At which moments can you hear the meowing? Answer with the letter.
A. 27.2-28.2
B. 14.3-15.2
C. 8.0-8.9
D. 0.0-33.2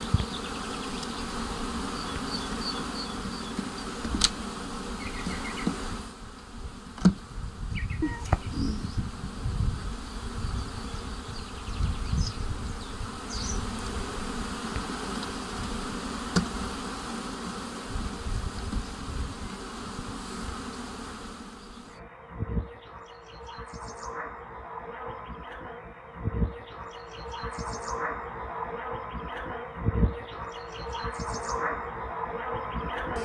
C.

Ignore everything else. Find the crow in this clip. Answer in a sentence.
You can't hear the crow here.